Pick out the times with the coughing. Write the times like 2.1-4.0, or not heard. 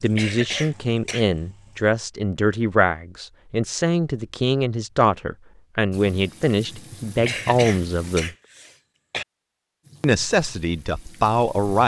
0.1-1.2, 7.2-9.2.